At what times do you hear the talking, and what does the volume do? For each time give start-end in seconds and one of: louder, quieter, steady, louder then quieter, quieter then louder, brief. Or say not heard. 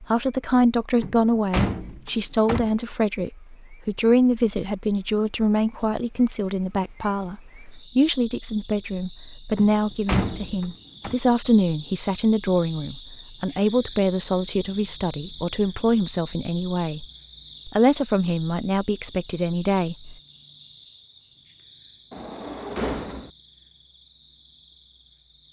0.0-17.1 steady
17.6-20.1 brief.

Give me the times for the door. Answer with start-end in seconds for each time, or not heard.
1.0-2.8, 9.6-11.2, 22.1-23.3.